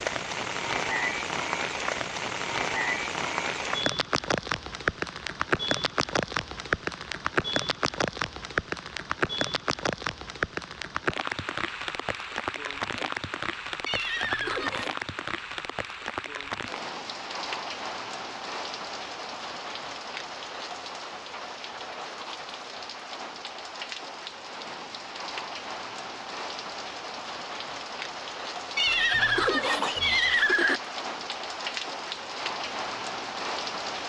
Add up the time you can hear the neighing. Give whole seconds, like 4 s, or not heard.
3 s.